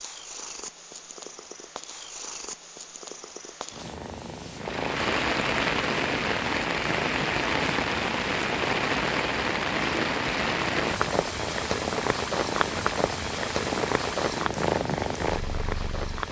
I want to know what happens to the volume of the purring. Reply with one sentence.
The loudness of the purring goes up.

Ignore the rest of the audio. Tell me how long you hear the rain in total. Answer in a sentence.
You can hear the rain for 12 seconds altogether.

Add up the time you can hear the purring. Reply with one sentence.
The purring can be heard for 16 seconds in total.